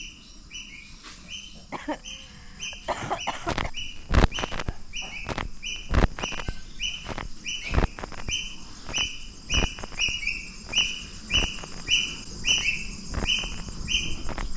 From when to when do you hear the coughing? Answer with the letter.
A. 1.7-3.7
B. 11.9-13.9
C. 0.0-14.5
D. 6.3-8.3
A.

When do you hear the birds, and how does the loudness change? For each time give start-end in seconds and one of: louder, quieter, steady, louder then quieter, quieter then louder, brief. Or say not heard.
0.0-14.5 louder.